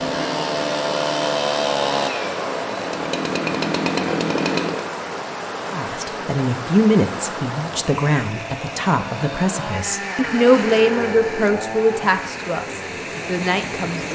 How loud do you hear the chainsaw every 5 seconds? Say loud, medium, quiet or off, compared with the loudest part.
loud, medium, medium.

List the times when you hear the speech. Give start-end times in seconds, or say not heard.
5.7-14.0.